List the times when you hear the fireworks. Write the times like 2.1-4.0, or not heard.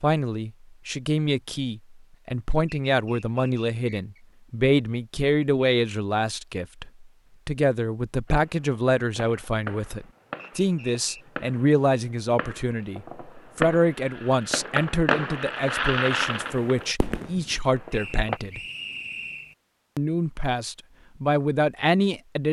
8.2-18.4.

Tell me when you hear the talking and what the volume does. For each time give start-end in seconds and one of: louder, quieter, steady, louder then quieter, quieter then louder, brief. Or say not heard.
0.0-18.6 steady
19.9-22.4 brief.